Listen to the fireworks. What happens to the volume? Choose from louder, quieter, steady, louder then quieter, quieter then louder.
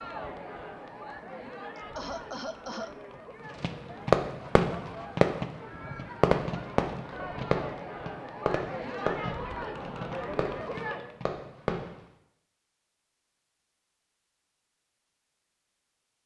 quieter.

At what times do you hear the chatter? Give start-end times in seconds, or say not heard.
0.0-11.2.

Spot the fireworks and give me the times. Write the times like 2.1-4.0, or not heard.
3.6-12.0.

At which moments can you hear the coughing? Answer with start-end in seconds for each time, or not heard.
1.8-3.2.